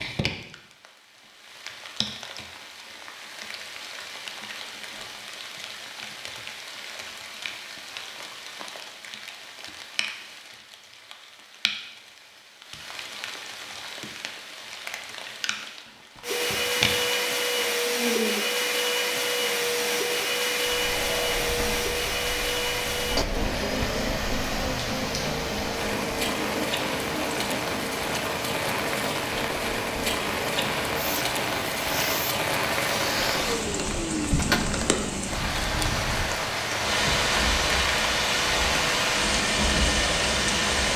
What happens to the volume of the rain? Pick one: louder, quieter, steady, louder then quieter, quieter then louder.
louder.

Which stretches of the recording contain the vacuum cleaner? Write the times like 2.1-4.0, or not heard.
16.2-40.9.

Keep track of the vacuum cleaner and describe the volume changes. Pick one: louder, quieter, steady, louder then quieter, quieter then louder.
quieter then louder.